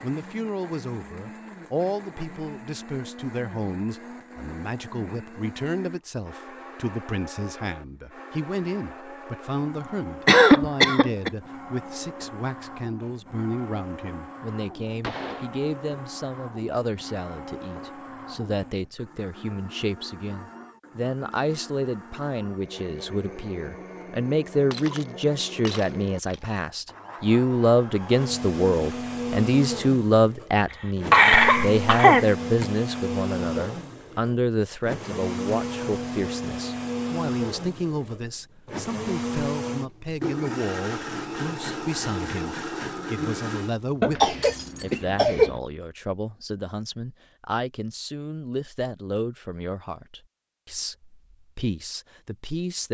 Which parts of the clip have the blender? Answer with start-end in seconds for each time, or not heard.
0.0-43.9.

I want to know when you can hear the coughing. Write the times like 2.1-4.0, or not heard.
10.2-11.3, 31.1-32.6, 44.0-45.6.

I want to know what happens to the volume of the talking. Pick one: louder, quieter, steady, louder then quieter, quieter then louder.
louder then quieter.